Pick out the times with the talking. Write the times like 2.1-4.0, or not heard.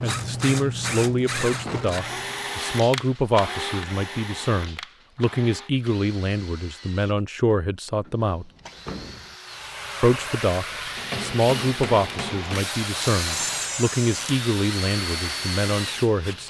0.0-8.4, 10.0-16.4.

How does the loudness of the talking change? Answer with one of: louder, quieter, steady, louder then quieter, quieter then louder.
steady.